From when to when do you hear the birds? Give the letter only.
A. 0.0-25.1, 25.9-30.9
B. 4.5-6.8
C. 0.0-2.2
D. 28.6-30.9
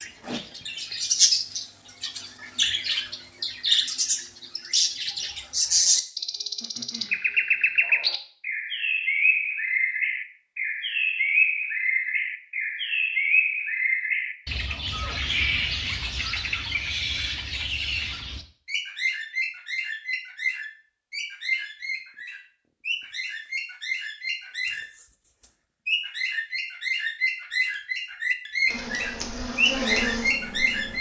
A.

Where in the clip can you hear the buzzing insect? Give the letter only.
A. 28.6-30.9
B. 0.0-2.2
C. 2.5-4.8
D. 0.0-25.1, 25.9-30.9
A.